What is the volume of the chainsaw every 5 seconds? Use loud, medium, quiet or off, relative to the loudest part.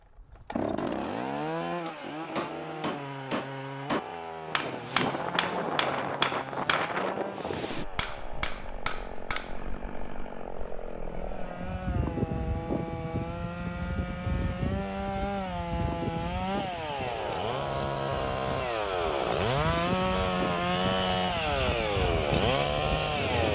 medium, quiet, medium, loud, loud.